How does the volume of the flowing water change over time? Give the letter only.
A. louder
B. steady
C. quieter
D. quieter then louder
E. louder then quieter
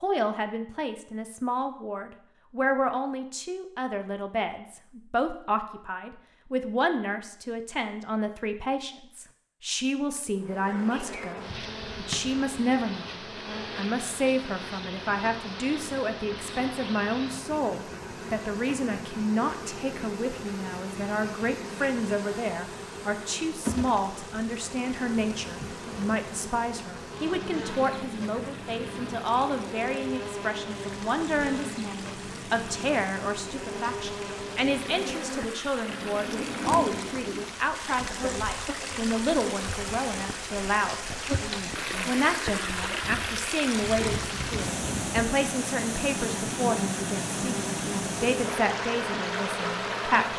A.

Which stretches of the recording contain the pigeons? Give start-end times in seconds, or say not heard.
35.9-37.5.